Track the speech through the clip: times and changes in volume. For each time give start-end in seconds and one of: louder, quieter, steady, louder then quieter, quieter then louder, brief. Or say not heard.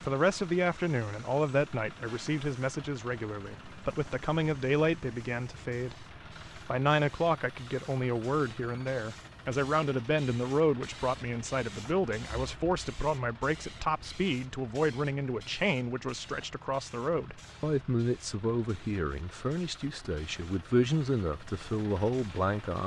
0.0-22.8 steady.